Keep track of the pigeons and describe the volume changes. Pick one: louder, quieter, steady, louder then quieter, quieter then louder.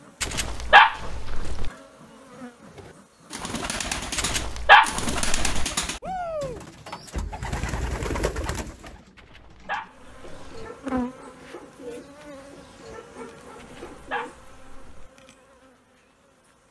quieter.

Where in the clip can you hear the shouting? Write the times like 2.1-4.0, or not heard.
6.0-6.6.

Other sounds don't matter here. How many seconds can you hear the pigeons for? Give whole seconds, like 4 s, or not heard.
12 s.